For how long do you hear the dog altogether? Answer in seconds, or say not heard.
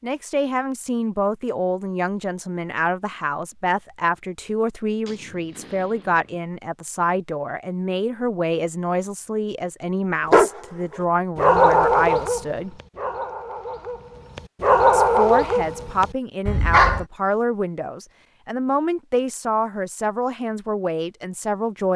7 s.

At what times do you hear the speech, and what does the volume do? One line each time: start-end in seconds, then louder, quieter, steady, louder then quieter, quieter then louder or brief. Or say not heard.
0.0-12.8 steady
14.9-21.9 steady.